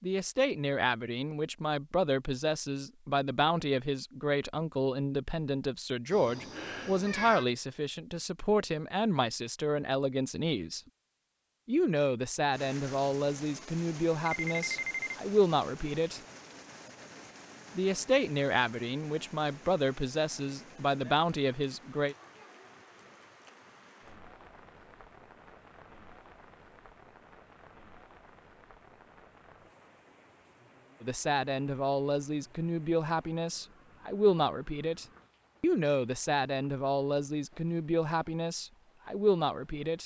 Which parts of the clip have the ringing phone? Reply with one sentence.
The ringing phone can be heard from 14.2 to 15.2 s.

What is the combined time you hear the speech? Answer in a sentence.
You can hear the speech for 29 seconds altogether.